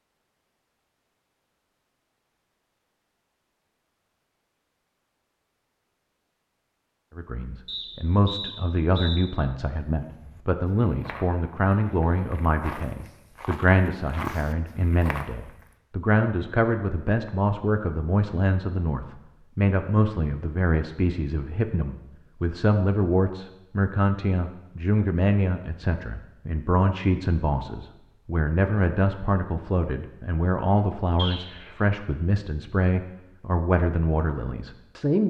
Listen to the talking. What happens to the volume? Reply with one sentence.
The volume of the talking stays about the same.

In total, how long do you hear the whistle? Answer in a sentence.
You can hear the whistle for 2 seconds altogether.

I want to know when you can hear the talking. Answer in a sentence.
You can hear the talking from 7.2 to 35.2 s.